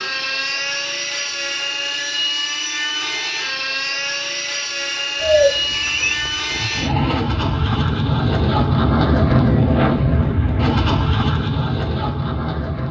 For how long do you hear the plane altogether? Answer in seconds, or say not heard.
13 s.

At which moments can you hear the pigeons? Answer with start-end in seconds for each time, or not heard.
5.2-6.8.